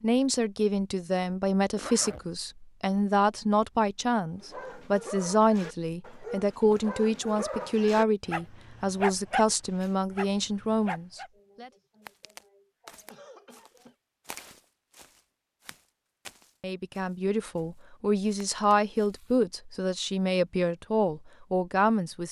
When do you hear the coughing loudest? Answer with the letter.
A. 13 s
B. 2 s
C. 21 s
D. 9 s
A.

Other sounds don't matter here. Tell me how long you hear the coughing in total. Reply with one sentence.
The coughing can be heard for 3 seconds in total.